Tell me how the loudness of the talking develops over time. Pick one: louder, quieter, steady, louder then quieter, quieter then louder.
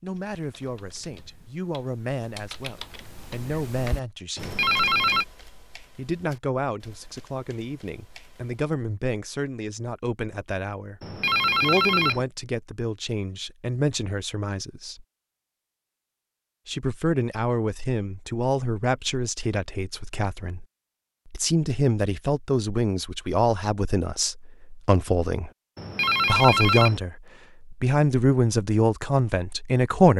louder.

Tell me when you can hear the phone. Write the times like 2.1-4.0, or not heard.
4.3-5.2, 11.0-12.2, 25.8-27.0.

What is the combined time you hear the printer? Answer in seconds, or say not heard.
not heard.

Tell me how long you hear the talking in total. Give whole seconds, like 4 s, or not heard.
26 s.